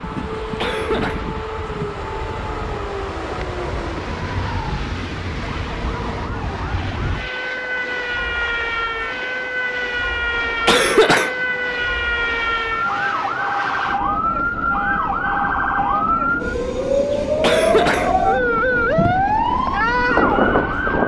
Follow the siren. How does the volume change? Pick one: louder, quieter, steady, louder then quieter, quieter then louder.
louder.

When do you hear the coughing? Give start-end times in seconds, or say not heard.
0.6-1.2, 10.7-11.3, 17.4-19.3.